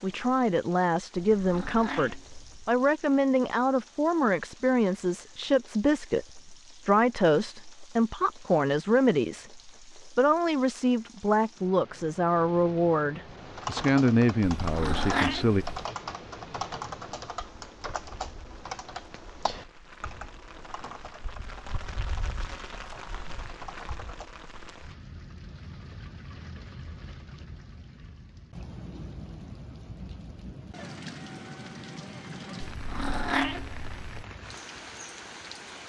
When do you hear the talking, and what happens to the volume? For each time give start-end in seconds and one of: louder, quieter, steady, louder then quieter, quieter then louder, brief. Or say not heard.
0.0-15.7 steady.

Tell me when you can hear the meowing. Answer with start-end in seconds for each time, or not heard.
1.1-2.8, 14.6-15.6, 32.6-34.2.